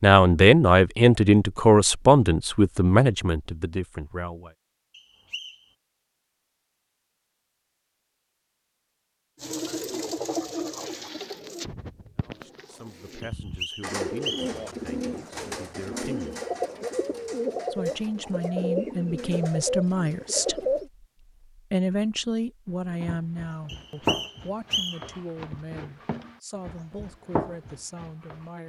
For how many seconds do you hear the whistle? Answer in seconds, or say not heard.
4 s.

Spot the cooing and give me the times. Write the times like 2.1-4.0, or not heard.
9.4-20.9.